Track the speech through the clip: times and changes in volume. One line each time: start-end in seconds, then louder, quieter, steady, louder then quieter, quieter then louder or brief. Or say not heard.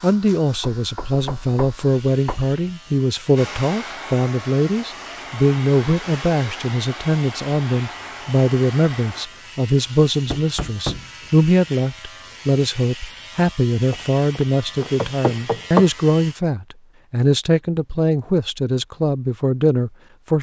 0.0-20.3 steady.